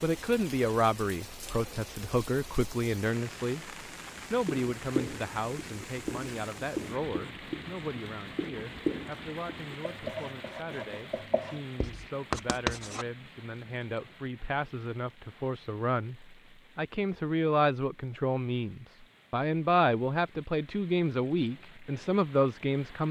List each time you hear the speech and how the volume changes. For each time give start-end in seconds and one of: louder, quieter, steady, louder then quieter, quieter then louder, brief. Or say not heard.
0.0-23.0 quieter then louder.